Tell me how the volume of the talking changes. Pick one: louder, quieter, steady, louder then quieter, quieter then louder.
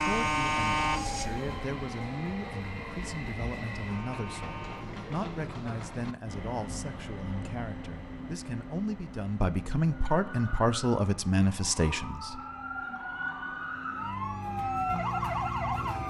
louder.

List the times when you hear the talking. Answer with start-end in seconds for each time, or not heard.
0.0-12.4.